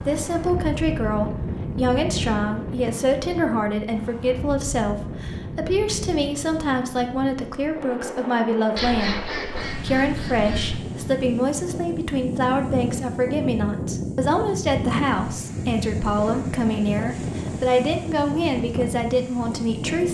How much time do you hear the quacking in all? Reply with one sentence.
The quacking can be heard for 2 seconds in total.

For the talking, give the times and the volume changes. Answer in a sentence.
The talking can be heard from 0.1 to 20.0 s, at a steady volume.